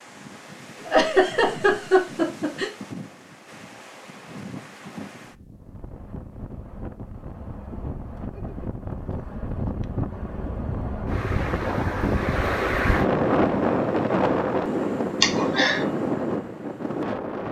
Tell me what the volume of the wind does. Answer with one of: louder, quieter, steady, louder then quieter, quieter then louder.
louder.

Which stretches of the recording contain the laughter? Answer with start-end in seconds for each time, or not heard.
0.8-2.7, 15.2-15.8.